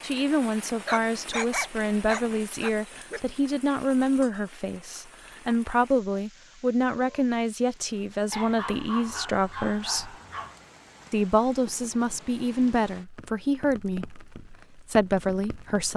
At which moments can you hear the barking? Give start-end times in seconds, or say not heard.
0.8-3.2, 8.3-10.6.